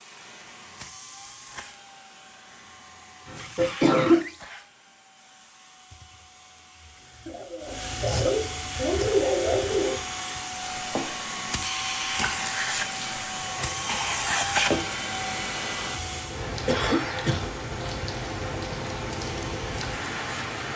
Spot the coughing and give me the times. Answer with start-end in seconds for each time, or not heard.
3.2-4.2, 7.2-10.0, 16.6-17.5.